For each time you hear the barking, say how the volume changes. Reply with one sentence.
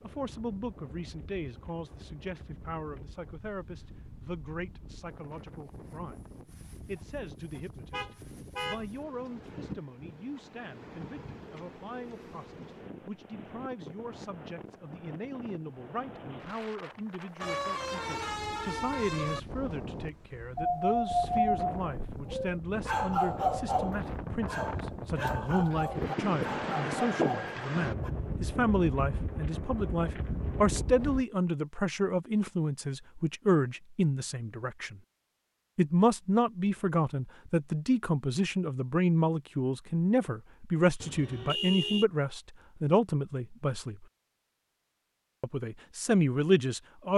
The barking can be heard from 20.6 to 28.1 s, getting quieter.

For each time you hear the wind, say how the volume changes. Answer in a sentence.
The wind can be heard from 0.0 to 31.2 s, getting louder.